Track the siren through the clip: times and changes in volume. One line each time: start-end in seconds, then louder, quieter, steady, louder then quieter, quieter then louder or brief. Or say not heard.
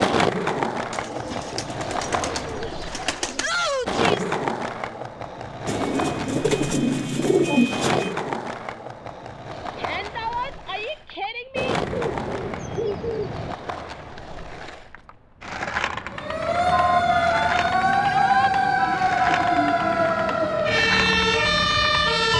16.1-22.3 steady.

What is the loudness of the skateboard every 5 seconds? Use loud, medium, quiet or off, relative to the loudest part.
loud, medium, medium, medium, medium.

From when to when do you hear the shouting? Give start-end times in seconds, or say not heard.
3.4-4.3, 9.8-11.8, 18.0-18.5.